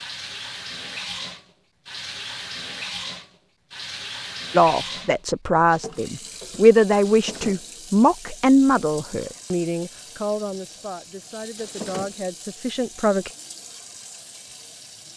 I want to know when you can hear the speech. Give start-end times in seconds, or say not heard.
4.5-13.3.